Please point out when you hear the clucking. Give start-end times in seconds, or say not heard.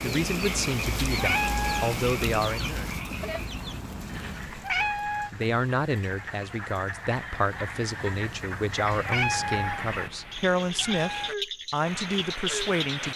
0.0-4.8.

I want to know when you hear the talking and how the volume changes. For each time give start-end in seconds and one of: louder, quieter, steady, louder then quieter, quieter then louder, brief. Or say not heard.
0.0-2.9 brief
4.8-13.1 steady.